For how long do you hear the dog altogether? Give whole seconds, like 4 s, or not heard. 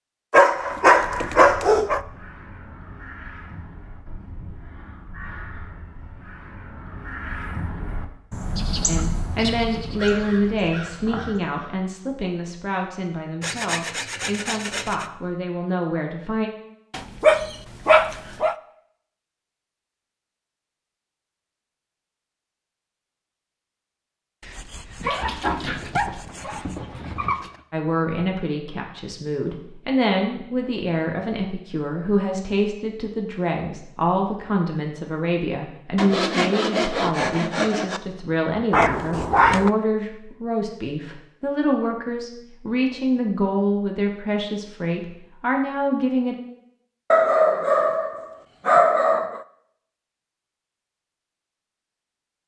9 s.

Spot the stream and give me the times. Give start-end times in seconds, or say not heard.
not heard.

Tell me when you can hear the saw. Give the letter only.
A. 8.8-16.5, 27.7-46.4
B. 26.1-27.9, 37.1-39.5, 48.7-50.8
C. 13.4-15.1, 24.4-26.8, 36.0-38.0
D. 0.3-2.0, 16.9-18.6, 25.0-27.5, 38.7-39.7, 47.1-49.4
C.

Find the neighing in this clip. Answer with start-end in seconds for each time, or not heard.
not heard.